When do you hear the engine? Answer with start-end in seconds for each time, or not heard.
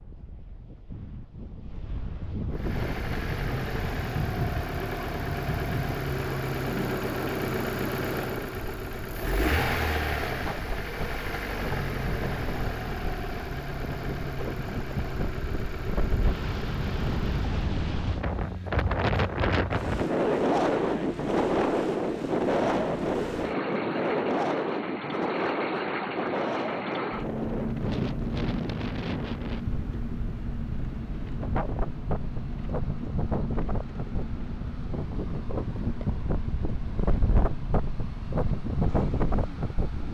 2.5-40.0.